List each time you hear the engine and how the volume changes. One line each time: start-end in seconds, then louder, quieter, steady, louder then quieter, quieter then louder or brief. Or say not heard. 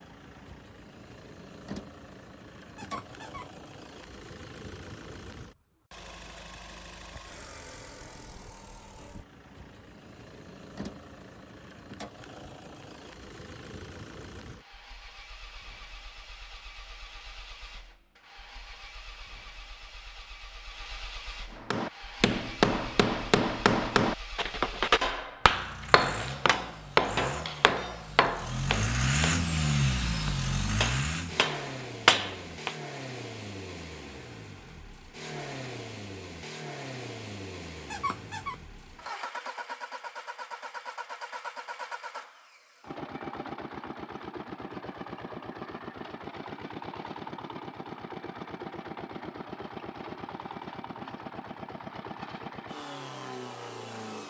0.0-54.2 louder then quieter.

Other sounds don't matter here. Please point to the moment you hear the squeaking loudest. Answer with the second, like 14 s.
38 s.